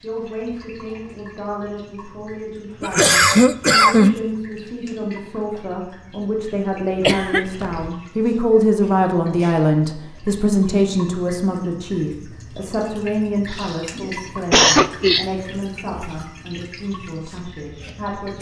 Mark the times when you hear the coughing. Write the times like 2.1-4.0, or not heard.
2.8-4.2, 7.0-7.9, 13.5-15.2.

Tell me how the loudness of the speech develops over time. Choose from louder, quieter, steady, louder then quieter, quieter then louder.
louder then quieter.